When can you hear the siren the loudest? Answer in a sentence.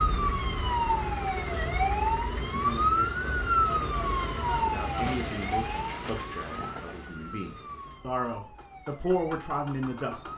The volume of the siren peaks at 3 seconds.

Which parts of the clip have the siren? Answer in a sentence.
You can hear the siren from 0.0 to 10.3 s.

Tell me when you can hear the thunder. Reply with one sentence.
You can hear the thunder from 4.3 to 7.1 s.